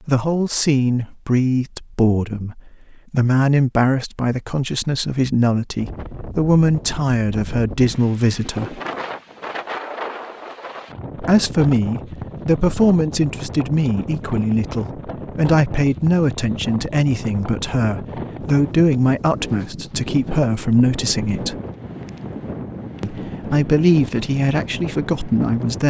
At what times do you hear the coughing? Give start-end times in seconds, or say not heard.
not heard.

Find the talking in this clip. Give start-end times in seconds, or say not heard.
0.1-8.8, 11.2-21.6, 23.0-25.8.